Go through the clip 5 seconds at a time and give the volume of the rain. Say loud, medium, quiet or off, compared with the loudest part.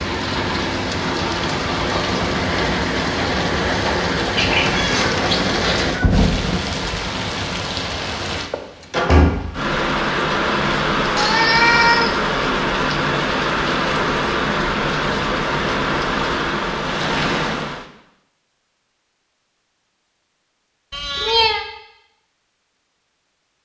loud, loud, loud, loud, off.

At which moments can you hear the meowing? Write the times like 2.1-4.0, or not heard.
4.3-6.0, 11.2-12.2, 20.9-21.6.